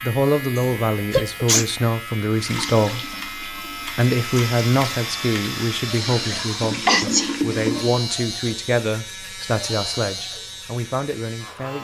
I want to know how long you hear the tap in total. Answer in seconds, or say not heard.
6 s.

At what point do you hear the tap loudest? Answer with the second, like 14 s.
7 s.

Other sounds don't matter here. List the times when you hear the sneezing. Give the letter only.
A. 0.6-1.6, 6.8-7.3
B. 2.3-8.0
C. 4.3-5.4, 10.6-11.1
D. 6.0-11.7
A.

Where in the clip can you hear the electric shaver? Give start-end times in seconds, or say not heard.
0.0-11.7.